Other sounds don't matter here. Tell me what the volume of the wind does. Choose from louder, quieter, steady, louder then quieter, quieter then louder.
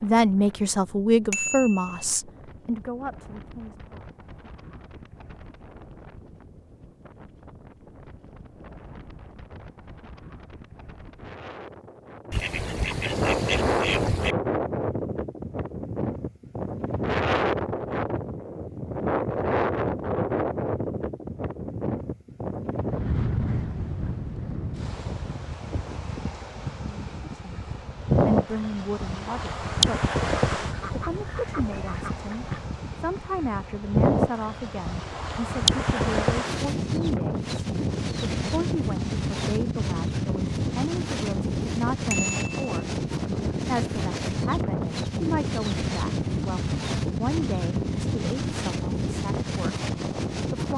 louder.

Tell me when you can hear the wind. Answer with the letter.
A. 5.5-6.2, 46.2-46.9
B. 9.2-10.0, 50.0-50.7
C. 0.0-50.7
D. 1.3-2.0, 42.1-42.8
C.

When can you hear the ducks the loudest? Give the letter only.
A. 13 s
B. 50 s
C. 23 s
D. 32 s
A.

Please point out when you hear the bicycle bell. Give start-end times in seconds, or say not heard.
1.3-2.0, 42.1-42.8.